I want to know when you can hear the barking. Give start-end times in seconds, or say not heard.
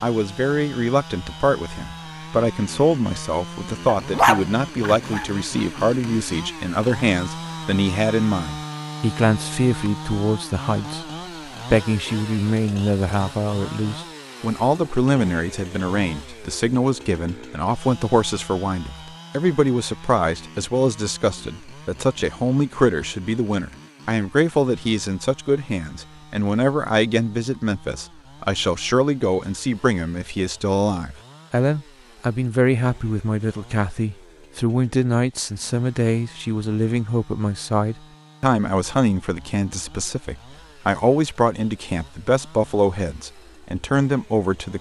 4.1-5.2.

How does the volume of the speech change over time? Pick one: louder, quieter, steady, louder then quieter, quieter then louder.
steady.